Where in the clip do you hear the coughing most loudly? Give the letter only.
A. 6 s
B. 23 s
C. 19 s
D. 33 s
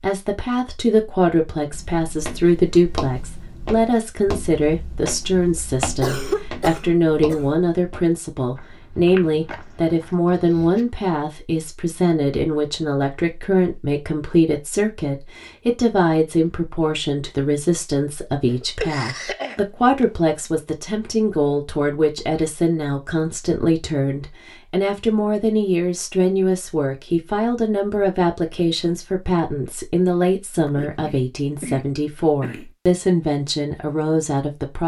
A.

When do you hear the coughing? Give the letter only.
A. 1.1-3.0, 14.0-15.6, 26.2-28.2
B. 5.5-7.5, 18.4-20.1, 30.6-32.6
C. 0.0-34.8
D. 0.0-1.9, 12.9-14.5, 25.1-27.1
B.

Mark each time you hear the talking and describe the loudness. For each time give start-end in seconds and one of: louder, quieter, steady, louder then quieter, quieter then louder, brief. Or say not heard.
0.0-34.8 steady.